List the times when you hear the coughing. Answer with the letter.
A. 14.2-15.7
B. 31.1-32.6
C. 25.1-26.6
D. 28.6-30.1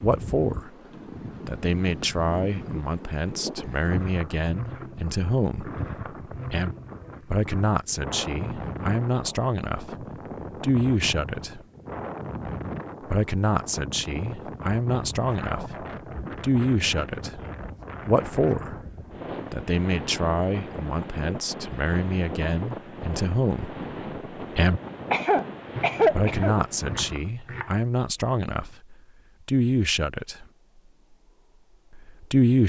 C.